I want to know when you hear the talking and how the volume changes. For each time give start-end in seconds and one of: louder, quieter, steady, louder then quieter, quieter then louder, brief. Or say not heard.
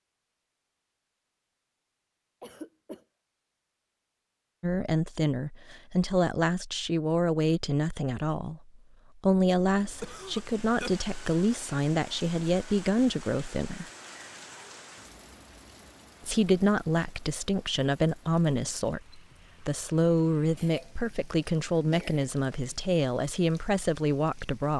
4.6-13.8 steady
16.2-24.7 steady.